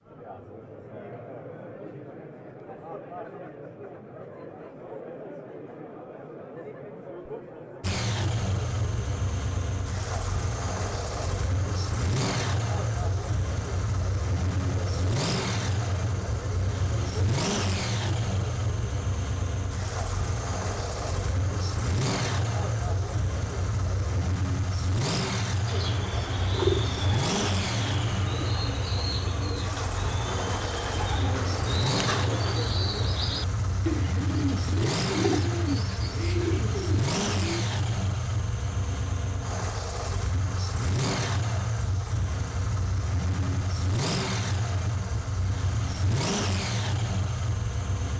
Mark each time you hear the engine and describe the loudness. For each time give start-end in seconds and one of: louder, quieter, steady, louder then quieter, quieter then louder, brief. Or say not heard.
7.8-48.1 steady.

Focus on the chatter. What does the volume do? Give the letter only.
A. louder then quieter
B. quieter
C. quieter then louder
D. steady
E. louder
D.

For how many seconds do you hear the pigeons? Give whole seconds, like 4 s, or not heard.
12 s.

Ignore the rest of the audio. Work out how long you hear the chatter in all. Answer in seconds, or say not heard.
24 s.